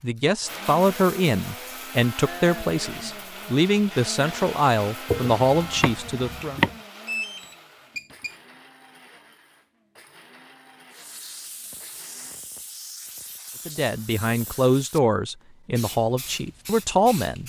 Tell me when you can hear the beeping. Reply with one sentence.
You can hear the beeping from 7.0 to 8.3 s.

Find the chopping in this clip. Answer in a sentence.
You can hear the chopping from 5.0 to 6.8 s.